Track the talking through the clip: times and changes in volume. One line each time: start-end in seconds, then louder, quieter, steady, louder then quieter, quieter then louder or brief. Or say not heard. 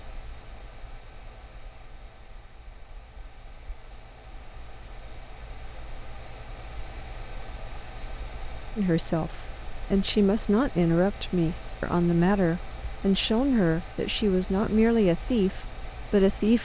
8.8-16.6 steady.